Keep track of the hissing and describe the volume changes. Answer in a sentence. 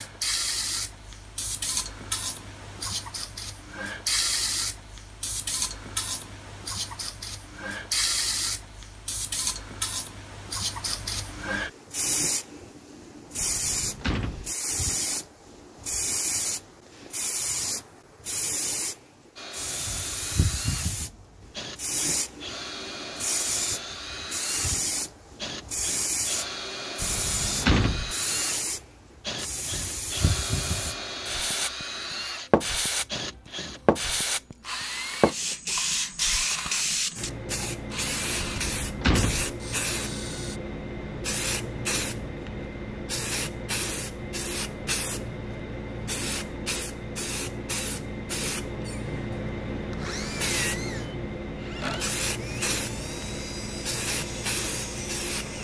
The volume of the hissing stays about the same.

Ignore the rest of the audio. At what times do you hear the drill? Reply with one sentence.
The drill can be heard from 19.4 to 40.6 s and from 48.9 to 55.5 s.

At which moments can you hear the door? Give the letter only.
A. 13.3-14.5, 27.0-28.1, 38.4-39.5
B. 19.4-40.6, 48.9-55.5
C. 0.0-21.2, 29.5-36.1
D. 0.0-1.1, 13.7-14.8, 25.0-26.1
A.